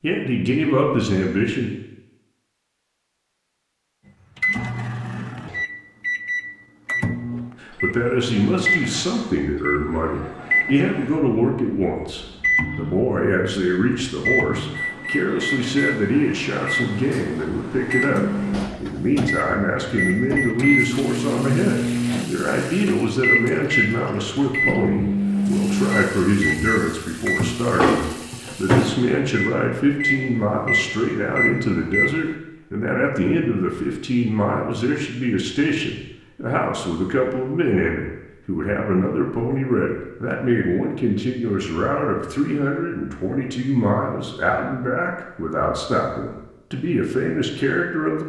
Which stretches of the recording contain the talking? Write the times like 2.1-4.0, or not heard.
0.0-1.7, 7.6-48.2.